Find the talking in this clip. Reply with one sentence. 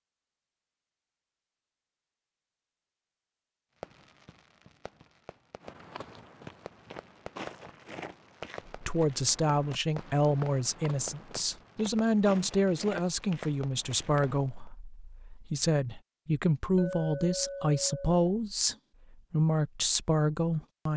You can hear the talking from 8.7 to 20.9 s.